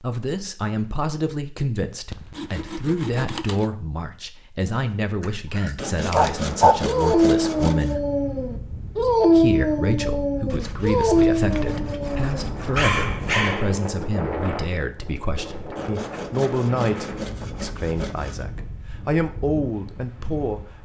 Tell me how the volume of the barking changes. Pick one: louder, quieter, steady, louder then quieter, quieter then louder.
quieter.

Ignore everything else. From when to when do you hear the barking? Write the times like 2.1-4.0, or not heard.
4.7-13.8.